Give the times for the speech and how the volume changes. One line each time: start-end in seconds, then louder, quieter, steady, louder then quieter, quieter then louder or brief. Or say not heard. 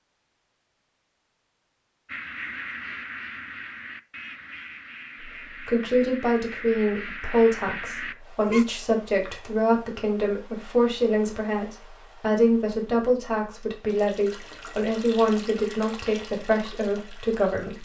5.2-17.7 steady.